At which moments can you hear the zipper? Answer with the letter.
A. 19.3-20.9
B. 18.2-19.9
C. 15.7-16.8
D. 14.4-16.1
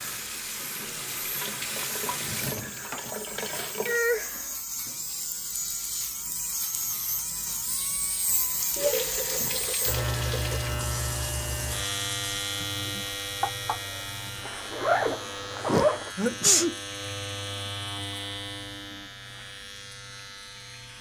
D.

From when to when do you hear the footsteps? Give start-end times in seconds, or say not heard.
not heard.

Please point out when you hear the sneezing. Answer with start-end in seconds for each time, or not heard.
15.7-16.8.